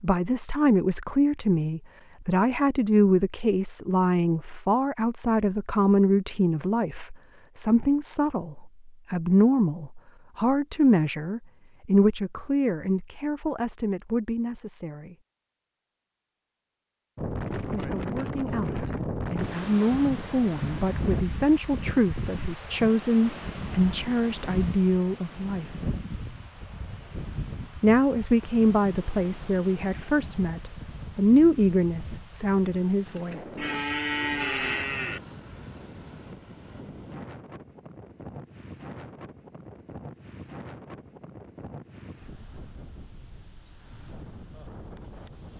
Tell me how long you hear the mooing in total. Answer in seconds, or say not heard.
2 s.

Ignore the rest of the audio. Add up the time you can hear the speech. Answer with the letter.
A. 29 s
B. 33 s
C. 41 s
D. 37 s
A.